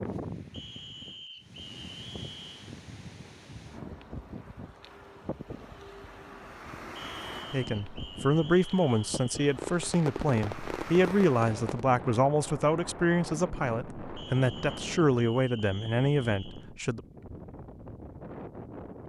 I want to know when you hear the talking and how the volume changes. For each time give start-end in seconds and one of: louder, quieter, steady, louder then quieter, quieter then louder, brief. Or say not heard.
7.5-17.0 steady.